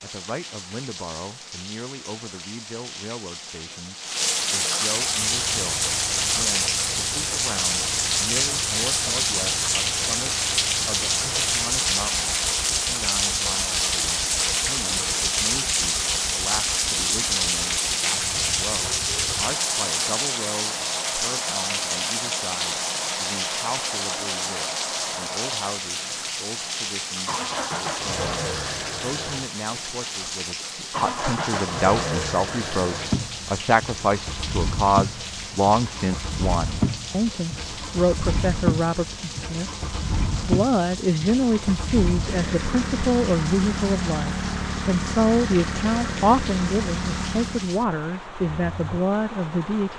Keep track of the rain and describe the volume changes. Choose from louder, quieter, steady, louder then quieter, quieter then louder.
quieter.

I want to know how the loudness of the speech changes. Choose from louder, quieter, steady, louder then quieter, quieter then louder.
louder.